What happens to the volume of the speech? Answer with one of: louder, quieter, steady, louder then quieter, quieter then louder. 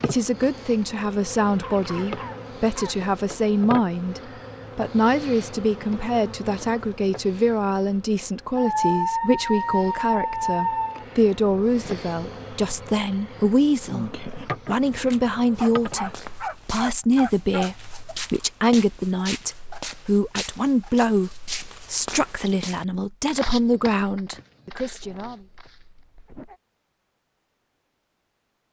steady.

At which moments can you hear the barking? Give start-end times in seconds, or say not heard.
1.6-3.0, 8.6-11.1, 15.1-18.0, 24.7-26.6.